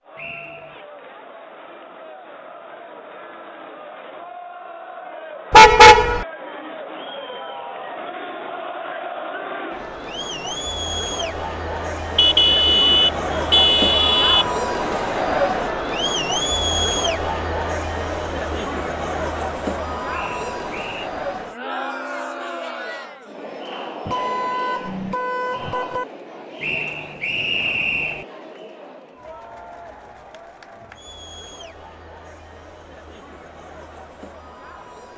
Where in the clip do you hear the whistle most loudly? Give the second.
28 s.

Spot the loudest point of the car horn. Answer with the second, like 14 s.
6 s.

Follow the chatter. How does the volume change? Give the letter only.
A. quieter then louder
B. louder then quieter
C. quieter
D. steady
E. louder
B.